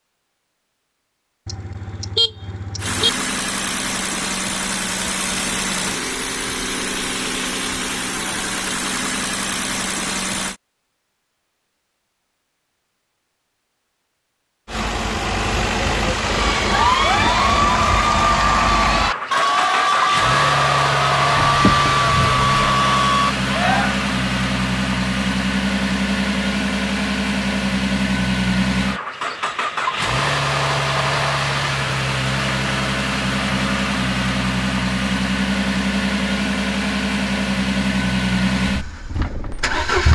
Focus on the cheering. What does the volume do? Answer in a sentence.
The loudness of the cheering stays about the same.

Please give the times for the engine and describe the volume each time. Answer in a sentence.
You can hear the engine from 2.8 to 10.6 s, at a steady volume; and from 14.7 to 40.1 s, at a steady volume.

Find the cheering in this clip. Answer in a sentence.
The cheering can be heard from 16.2 to 23.9 s.